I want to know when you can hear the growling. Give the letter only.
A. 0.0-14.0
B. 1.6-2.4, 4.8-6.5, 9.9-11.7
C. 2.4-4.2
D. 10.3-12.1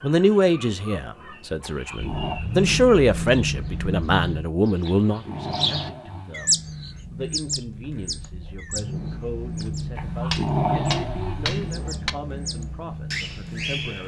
B.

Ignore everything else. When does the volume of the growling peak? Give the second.
11 s.